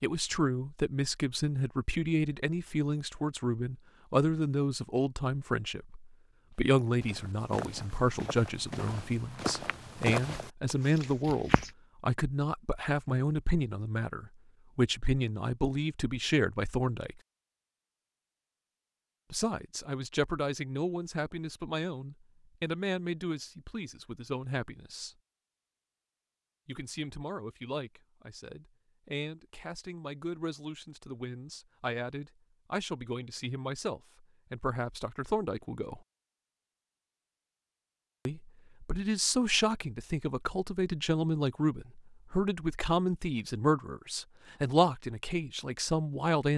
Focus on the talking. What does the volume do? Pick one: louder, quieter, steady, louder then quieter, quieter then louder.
quieter then louder.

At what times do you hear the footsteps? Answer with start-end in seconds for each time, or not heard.
7.0-11.7.